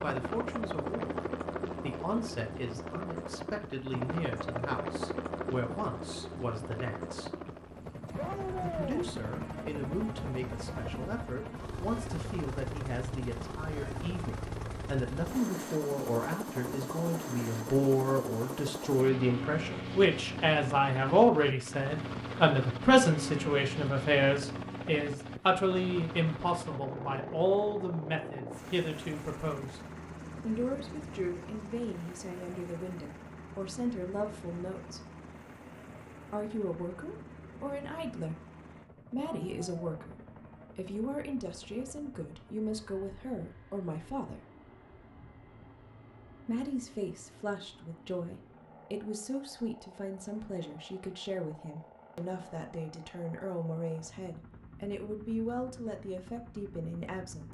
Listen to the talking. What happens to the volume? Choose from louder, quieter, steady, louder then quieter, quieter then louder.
louder then quieter.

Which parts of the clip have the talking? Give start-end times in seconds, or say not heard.
0.0-7.3, 8.6-29.8, 30.4-35.0, 36.3-44.4, 46.5-57.5.